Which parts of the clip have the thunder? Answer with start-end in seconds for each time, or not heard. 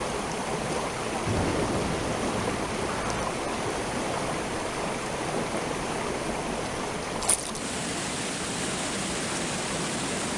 1.2-3.2.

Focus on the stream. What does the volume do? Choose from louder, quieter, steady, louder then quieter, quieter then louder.
steady.